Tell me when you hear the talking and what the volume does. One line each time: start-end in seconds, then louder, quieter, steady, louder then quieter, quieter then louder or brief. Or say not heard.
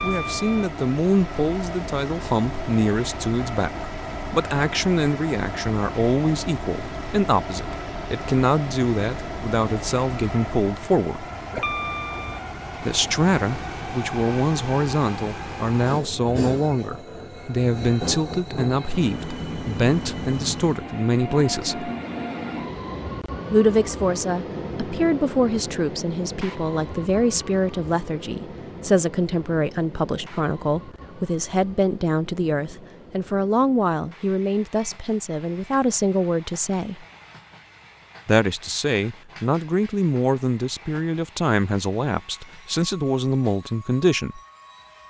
0.0-11.2 steady
12.8-21.9 steady
23.5-37.0 steady
38.2-44.4 steady.